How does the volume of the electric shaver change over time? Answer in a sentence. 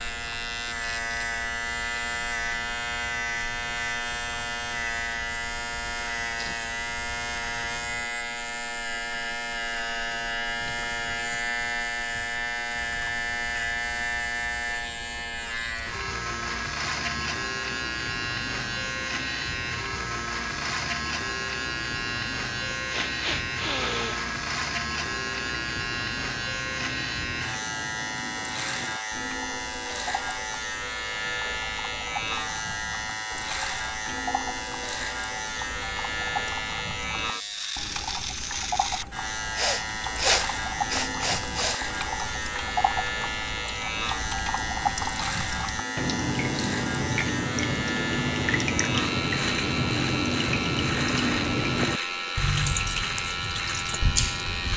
The loudness of the electric shaver stays about the same.